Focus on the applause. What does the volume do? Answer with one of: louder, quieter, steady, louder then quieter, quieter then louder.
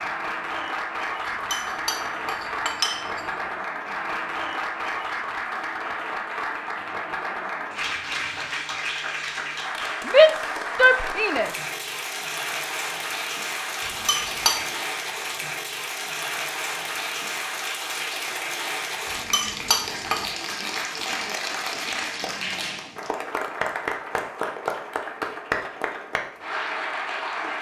steady.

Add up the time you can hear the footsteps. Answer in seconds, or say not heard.
not heard.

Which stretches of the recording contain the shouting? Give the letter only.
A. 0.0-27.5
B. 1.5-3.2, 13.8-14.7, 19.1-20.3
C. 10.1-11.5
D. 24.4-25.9
C.